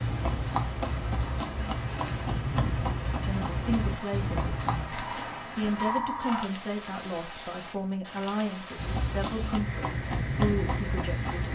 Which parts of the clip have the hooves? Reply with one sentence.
You can hear the hooves from 0.0 to 4.9 s and from 8.8 to 11.5 s.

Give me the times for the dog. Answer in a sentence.
You can hear the dog from 4.9 to 6.5 s.